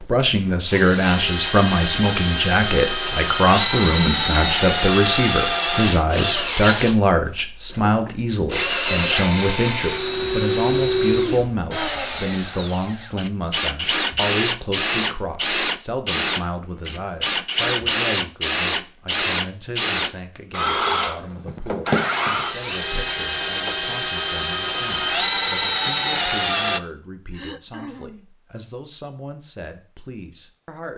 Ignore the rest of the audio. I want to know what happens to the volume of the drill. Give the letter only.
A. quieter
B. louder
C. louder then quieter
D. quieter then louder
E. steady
E.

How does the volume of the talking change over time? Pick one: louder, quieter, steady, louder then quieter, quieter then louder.
quieter.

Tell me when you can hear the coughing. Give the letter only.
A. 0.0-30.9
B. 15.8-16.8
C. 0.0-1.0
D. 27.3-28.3
D.